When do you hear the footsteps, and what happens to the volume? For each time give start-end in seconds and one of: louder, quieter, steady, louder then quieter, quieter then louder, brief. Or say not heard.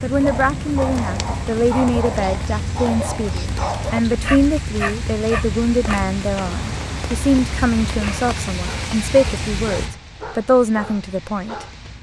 not heard.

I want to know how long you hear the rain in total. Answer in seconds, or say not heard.
12 s.